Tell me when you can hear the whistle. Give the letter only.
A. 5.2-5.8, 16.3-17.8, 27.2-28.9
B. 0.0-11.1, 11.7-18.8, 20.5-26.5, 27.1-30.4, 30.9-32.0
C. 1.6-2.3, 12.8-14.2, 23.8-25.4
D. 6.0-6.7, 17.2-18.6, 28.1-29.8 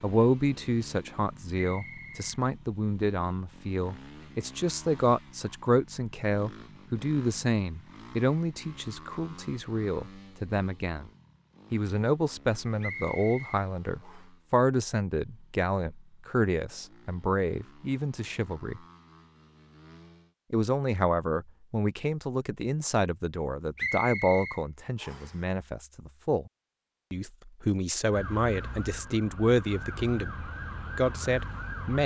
C.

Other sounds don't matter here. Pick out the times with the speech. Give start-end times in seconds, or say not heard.
0.0-11.1, 11.7-18.8, 20.5-26.5, 27.1-30.4, 30.9-32.0.